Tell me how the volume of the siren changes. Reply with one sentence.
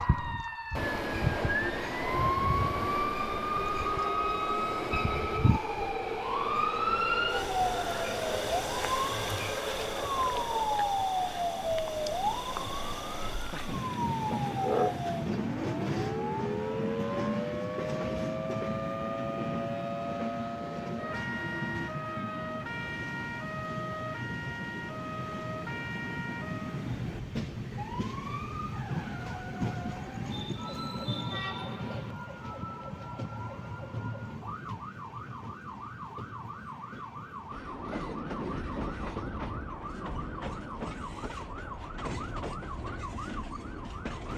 The loudness of the siren goes down.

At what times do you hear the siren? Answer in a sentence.
The siren can be heard from 0.0 to 44.3 s.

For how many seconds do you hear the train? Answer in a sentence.
The train can be heard for 44 seconds in total.